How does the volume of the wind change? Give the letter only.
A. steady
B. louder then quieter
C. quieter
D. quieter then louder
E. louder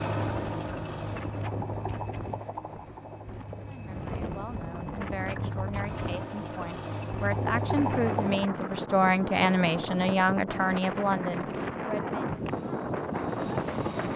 E.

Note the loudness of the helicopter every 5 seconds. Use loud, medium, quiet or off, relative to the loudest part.
loud, loud, medium.